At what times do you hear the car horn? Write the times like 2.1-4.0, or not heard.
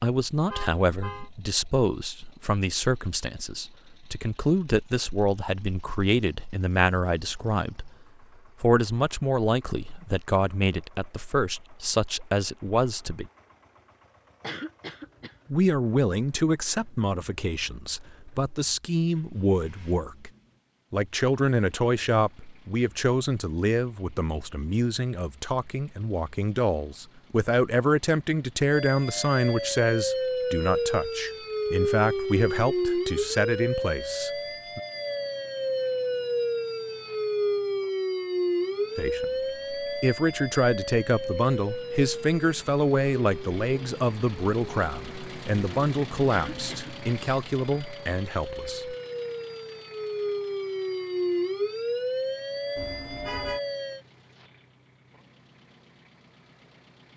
0.5-1.3, 52.8-53.6.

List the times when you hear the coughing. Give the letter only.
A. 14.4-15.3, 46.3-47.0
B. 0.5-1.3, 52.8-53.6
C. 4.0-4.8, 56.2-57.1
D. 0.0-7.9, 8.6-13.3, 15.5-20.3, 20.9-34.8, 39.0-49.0
A.